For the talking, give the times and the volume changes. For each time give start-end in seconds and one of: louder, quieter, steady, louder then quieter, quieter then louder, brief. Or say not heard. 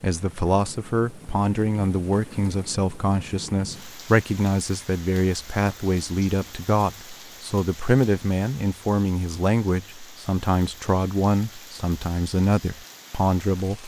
0.0-13.8 steady.